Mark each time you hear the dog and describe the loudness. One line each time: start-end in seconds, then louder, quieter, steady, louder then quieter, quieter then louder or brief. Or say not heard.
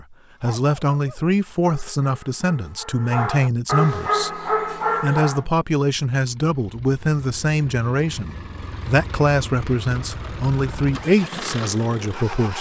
0.3-5.5 louder.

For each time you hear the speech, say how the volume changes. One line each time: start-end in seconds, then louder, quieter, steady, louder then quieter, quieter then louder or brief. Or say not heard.
0.0-12.5 steady.